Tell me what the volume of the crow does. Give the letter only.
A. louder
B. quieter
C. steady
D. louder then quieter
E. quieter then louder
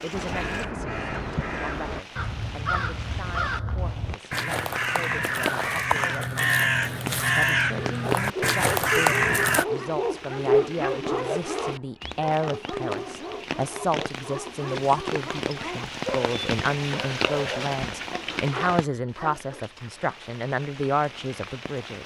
A.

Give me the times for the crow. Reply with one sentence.
The crow can be heard from 0.1 to 9.7 s.